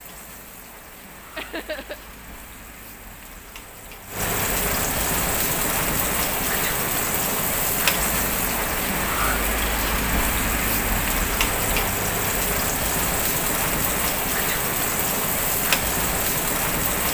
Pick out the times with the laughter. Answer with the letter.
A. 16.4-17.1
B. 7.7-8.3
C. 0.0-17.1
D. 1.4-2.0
D.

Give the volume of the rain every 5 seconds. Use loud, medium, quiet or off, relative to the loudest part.
medium, loud, loud, loud.